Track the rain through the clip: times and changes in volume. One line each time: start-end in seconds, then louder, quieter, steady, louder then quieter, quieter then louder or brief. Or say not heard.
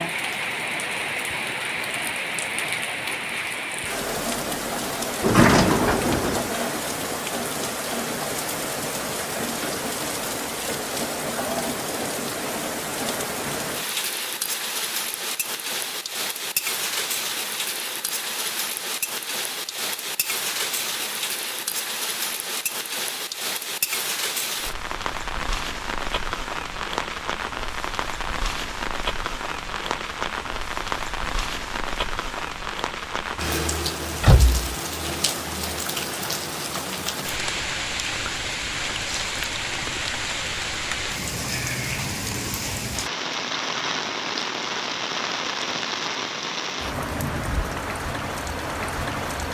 0.0-49.4 steady.